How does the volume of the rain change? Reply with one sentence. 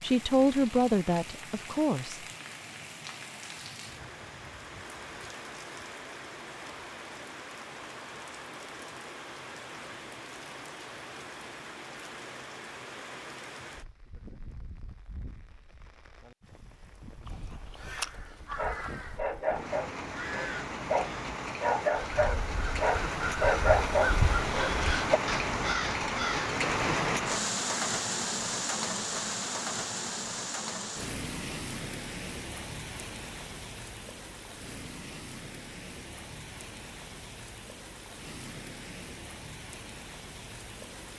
The volume of the rain goes up, then down.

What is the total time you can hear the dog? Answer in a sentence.
You can hear the dog for 7 seconds altogether.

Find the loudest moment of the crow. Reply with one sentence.
The loudest moment of the crow is at 24 seconds.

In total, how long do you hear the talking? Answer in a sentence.
You can hear the talking for 2 seconds altogether.